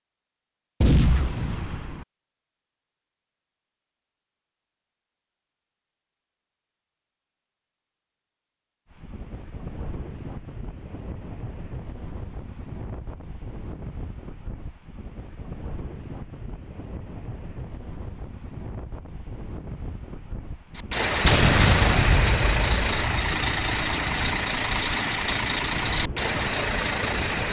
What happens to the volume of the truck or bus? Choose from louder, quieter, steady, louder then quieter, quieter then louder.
steady.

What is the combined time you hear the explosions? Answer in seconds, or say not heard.
3 s.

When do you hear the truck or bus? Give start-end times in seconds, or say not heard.
20.8-27.4.